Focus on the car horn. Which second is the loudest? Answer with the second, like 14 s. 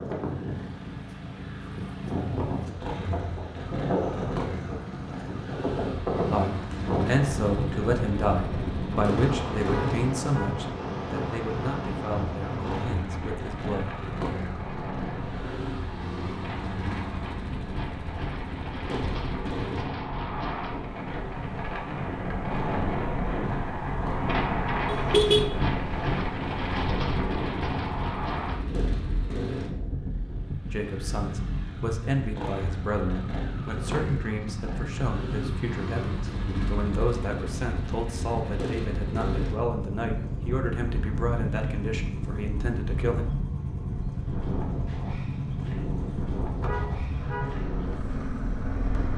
25 s.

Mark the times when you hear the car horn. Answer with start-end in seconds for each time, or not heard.
9.7-10.7, 24.9-25.4, 46.6-47.5.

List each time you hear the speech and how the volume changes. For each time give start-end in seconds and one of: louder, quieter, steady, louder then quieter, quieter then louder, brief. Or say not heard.
6.3-13.9 quieter
30.7-43.2 steady.